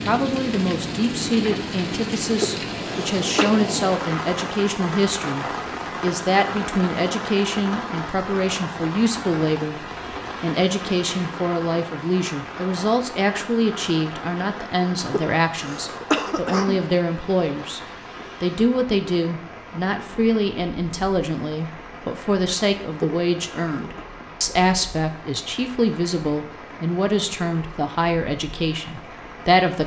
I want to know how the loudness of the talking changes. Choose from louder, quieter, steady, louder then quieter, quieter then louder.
steady.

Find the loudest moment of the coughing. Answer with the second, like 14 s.
16 s.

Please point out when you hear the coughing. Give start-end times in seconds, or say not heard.
2.4-3.5, 15.1-16.8, 23.0-24.1.